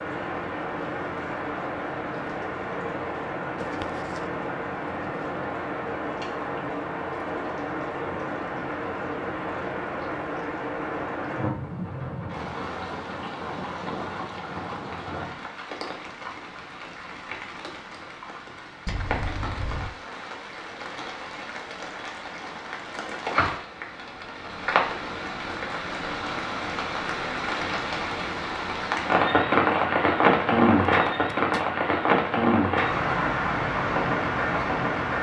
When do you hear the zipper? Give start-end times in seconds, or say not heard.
3.5-4.2, 18.9-19.9, 30.9-31.6.